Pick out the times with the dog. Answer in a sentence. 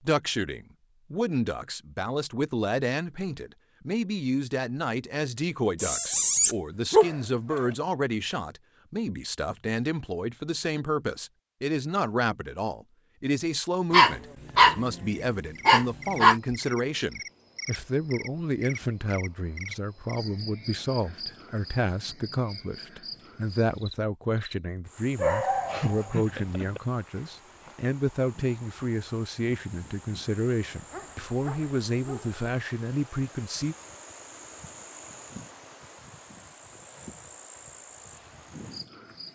You can hear the dog from 5.8 to 7.6 s, from 13.9 to 16.4 s, from 25.1 to 26.8 s and from 30.9 to 32.4 s.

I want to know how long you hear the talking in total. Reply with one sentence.
The talking can be heard for 34 seconds in total.